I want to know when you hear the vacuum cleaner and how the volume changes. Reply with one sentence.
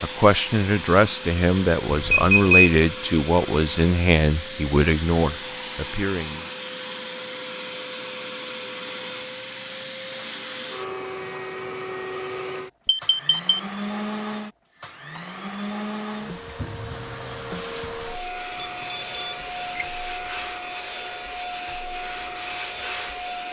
You can hear the vacuum cleaner from 0.0 to 23.4 s, at a steady volume.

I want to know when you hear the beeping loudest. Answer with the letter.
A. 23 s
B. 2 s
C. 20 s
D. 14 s
B.